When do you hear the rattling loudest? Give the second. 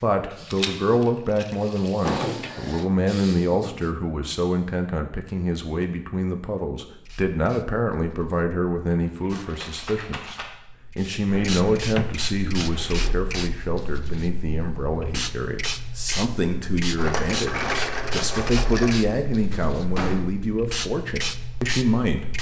18 s.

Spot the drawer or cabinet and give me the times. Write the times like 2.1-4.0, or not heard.
2.0-2.9, 11.3-13.2, 19.5-20.3.